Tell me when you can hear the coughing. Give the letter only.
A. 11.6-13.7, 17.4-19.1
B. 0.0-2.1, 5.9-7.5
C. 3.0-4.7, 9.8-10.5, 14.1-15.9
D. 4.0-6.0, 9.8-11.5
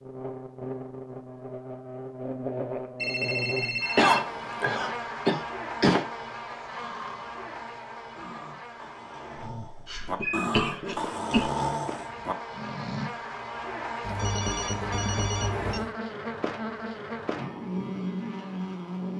D.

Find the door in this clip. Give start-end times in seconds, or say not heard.
not heard.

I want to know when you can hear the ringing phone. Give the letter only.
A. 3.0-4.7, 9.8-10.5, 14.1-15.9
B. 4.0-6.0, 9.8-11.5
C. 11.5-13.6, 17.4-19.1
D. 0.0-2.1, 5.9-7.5
A.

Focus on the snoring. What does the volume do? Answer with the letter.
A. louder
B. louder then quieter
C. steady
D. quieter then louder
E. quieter
A.